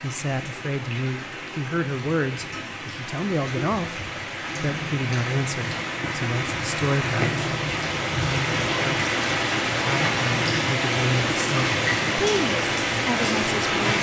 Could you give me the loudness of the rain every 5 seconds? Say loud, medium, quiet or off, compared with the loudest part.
medium, loud, loud.